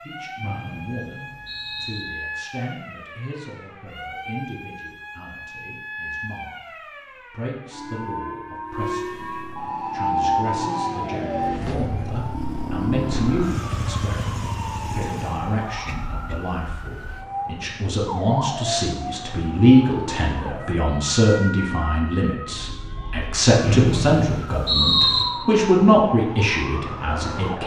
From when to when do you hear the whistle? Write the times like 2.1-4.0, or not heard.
0.4-2.0, 23.6-25.2.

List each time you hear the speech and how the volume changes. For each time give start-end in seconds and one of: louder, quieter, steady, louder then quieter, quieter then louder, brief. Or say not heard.
0.0-27.6 louder.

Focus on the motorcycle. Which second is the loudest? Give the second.
13 s.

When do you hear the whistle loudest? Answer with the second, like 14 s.
25 s.